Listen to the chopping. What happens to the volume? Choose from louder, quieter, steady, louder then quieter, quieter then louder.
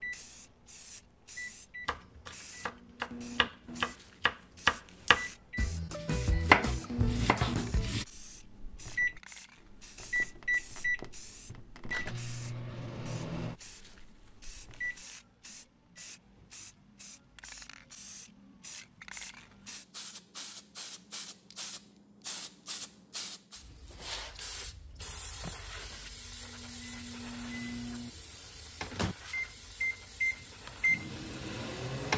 louder then quieter.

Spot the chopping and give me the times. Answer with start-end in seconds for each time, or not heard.
1.9-8.1.